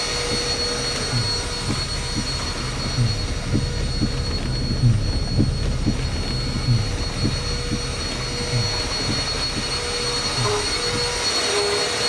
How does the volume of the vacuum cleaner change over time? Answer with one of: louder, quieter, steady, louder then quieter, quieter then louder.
quieter then louder.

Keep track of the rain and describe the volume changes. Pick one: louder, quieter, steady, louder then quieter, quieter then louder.
louder then quieter.